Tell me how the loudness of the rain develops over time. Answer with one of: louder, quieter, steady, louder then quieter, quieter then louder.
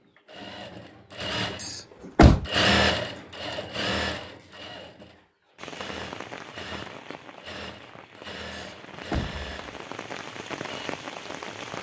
quieter then louder.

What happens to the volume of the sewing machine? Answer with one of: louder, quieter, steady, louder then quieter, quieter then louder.
louder then quieter.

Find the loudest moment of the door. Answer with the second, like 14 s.
2 s.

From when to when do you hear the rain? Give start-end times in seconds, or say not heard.
5.5-11.7.